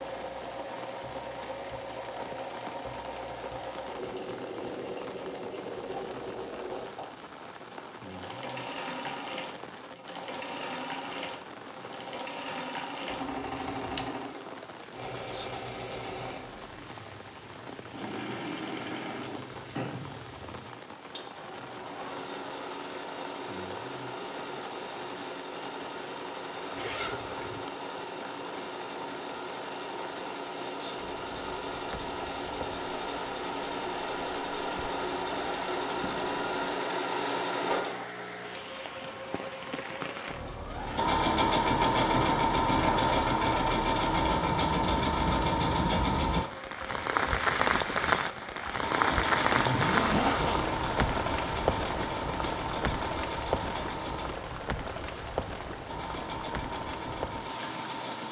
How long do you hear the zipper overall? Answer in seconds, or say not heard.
3 s.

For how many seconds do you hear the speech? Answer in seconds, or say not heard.
not heard.